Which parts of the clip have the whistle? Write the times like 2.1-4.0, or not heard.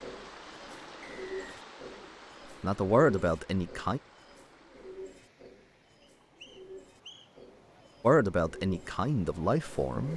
1.0-1.6, 6.0-7.5.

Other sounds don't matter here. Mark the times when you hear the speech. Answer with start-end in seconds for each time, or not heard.
2.6-4.0, 8.0-10.1.